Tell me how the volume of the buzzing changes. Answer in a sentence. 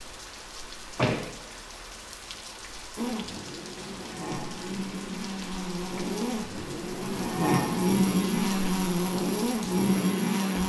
The loudness of the buzzing goes up.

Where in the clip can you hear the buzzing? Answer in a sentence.
The buzzing can be heard from 3.0 to 10.6 s.